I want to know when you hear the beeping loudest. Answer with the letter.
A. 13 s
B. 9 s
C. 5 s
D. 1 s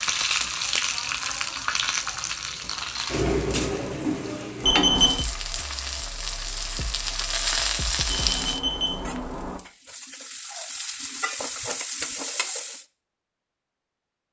C.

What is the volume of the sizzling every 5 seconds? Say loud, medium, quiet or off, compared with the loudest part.
loud, loud, medium.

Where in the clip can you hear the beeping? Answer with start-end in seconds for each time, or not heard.
4.6-5.2, 8.1-9.6.